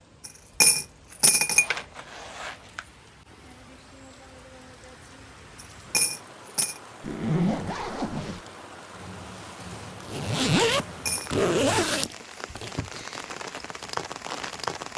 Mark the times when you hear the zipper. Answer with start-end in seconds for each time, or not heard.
1.1-2.9, 7.0-8.4, 10.1-12.7.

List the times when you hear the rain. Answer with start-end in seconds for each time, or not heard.
0.0-14.9.